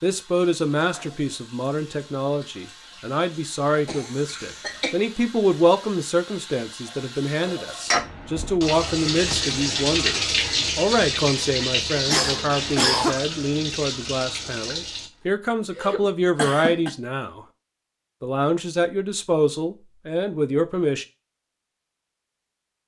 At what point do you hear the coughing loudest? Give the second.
13 s.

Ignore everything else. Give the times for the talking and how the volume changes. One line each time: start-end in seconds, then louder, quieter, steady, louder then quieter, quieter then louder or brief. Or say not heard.
0.0-17.4 steady
18.2-21.1 brief.